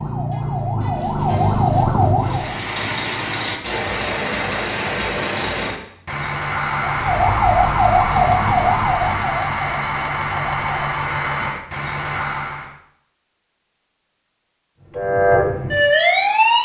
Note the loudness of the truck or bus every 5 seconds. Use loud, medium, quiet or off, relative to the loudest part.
loud, loud, loud, off.